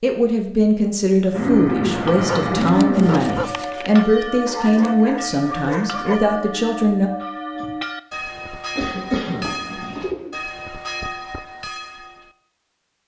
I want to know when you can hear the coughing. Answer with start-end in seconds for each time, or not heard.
8.8-10.2.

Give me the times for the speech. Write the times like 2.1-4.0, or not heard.
0.0-7.1.